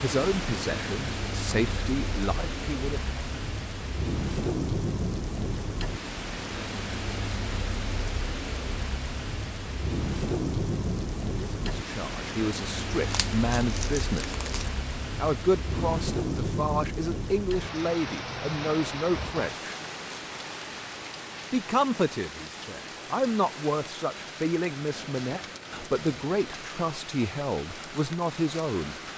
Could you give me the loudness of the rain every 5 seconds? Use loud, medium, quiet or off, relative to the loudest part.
loud, loud, loud, loud, medium, medium.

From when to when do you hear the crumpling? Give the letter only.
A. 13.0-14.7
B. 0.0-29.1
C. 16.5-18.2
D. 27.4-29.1
A.